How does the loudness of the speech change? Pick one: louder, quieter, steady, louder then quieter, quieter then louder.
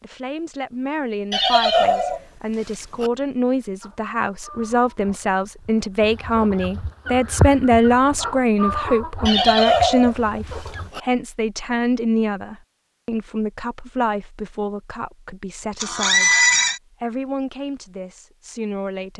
louder then quieter.